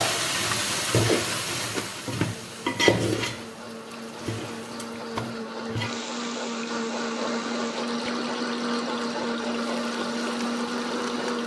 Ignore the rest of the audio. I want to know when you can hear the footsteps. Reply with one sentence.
The footsteps can't be heard in this clip.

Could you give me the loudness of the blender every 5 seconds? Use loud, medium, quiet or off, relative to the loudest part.
medium, loud, loud.